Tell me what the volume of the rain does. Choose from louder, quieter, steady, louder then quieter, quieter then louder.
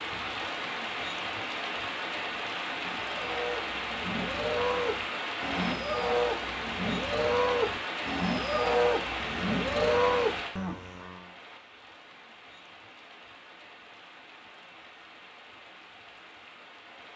quieter.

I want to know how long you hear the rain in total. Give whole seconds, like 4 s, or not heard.
17 s.